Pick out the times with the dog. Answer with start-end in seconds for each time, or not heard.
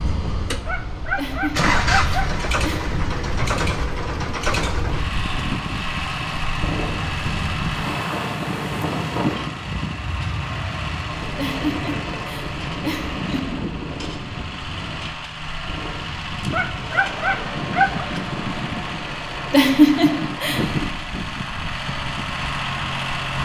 0.7-2.4, 16.5-18.1.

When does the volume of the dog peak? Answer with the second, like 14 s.
18 s.